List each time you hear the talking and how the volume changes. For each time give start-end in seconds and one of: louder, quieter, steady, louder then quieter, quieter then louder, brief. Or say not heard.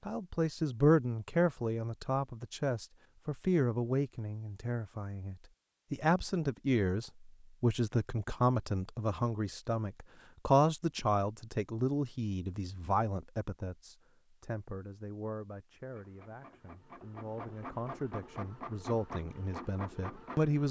0.1-20.6 quieter.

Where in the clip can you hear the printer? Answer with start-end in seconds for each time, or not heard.
15.8-20.6.